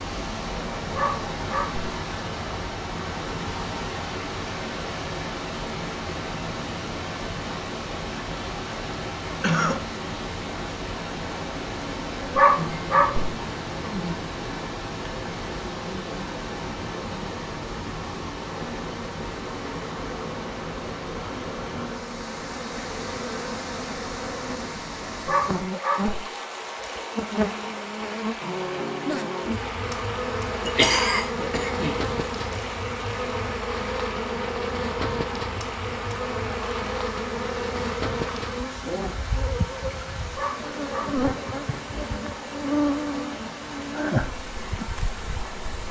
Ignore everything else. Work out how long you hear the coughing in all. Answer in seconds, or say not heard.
2 s.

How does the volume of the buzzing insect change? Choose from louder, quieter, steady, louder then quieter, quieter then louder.
louder.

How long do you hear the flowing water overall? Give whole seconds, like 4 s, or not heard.
46 s.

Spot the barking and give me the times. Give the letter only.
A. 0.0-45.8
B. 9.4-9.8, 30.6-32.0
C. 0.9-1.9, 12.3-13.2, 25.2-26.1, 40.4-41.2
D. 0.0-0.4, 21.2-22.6
C.